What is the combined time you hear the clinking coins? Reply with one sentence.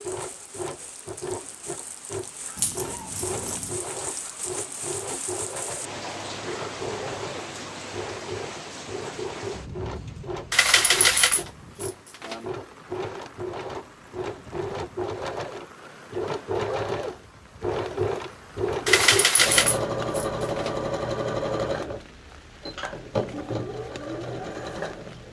You can hear the clinking coins for 5 seconds altogether.